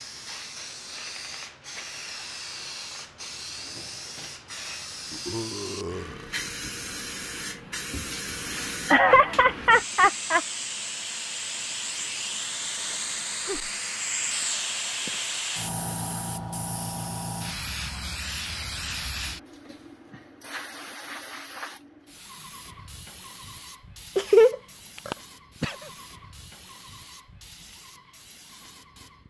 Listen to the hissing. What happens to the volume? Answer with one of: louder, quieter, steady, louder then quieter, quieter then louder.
louder then quieter.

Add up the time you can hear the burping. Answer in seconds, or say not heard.
3 s.